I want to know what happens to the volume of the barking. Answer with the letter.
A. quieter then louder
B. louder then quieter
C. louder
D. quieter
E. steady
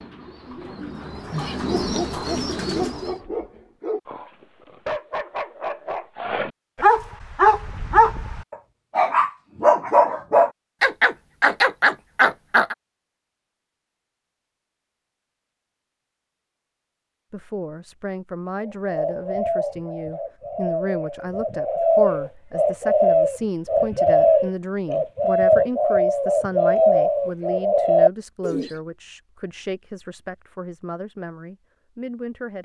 C.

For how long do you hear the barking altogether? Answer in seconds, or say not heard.
11 s.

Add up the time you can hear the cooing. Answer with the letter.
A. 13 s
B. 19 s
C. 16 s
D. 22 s
A.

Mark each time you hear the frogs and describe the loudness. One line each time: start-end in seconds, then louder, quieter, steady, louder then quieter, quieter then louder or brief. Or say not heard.
not heard.